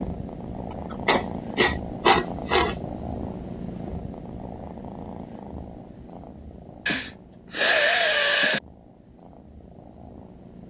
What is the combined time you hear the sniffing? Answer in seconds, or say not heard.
4 s.